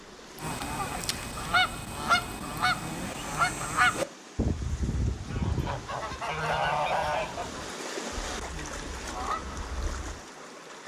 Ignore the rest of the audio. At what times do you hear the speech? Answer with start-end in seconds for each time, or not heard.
not heard.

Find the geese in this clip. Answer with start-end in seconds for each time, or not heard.
0.3-10.2.